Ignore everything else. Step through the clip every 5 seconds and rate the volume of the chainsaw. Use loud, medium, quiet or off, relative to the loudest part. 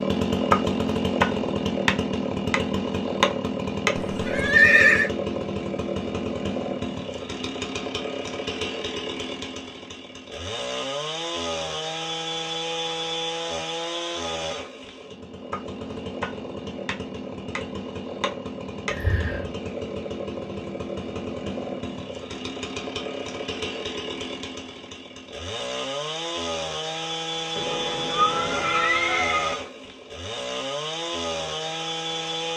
loud, medium, medium, medium, medium, medium, medium.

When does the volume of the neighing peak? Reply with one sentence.
The loudest moment of the neighing is at 5 seconds.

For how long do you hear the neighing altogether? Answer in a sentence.
You can hear the neighing for 4 seconds altogether.